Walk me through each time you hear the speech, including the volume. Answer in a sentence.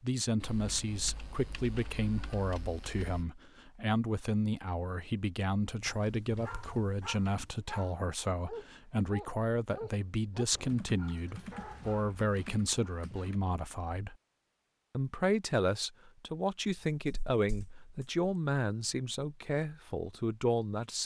You can hear the speech from 0.0 to 14.2 s, at a steady volume; and from 14.9 to 21.0 s, at a steady volume.